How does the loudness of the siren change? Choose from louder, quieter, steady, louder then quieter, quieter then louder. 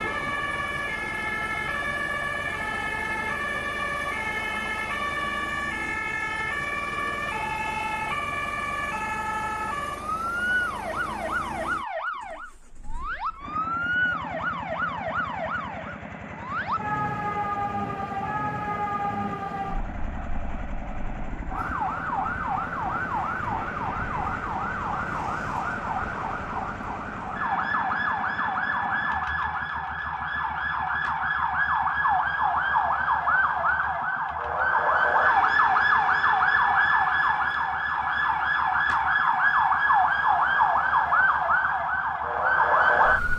louder.